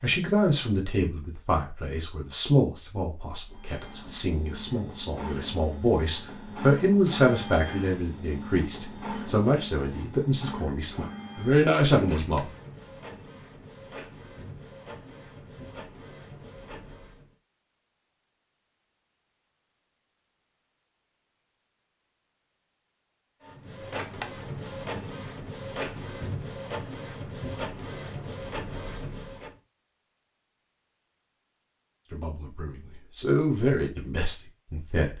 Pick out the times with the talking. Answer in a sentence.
The talking can be heard from 0.0 to 12.5 s and from 32.1 to 35.1 s.